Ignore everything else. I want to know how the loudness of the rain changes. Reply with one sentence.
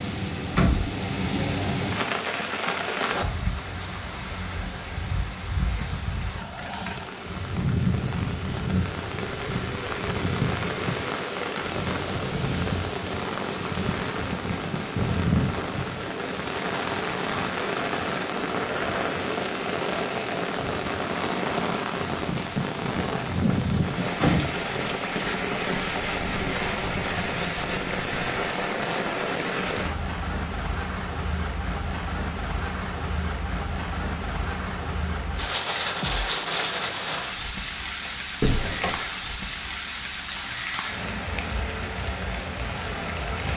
The loudness of the rain stays about the same.